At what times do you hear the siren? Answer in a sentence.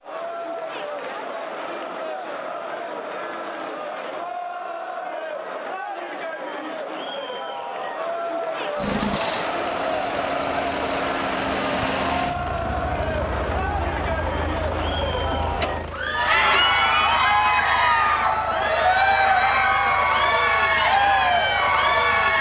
You can't hear the siren here.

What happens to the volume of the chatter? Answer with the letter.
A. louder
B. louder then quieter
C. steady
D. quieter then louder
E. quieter
A.